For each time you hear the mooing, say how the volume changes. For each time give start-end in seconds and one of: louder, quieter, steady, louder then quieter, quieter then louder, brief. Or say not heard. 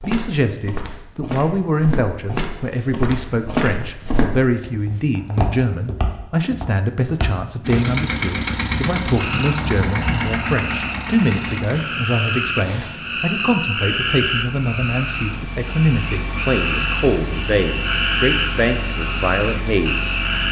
not heard.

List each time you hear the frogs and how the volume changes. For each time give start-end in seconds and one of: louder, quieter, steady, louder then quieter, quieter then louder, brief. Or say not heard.
9.2-20.4 louder.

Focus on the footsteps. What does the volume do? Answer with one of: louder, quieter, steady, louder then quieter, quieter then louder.
louder then quieter.